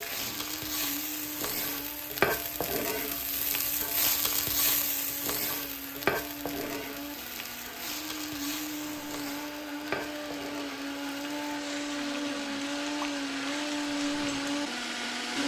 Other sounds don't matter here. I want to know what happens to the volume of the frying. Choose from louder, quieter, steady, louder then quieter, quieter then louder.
quieter.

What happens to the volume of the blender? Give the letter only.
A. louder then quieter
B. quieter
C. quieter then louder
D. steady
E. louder
E.